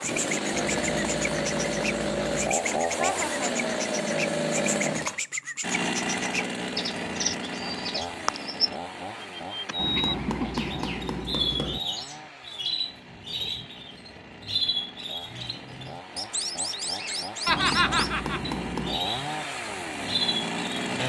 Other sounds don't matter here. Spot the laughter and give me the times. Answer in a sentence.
You can hear the laughter from 3.0 to 3.5 s, from 9.7 to 10.7 s and from 17.4 to 18.4 s.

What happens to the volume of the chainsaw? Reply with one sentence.
The volume of the chainsaw goes down, then up.